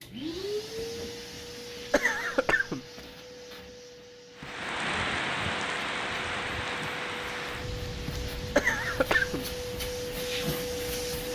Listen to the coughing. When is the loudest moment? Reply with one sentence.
The loudest moment of the coughing is at 9 seconds.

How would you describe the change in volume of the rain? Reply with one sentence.
The loudness of the rain goes down.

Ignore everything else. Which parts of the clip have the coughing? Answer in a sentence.
You can hear the coughing from 1.9 to 2.9 s and from 8.6 to 9.4 s.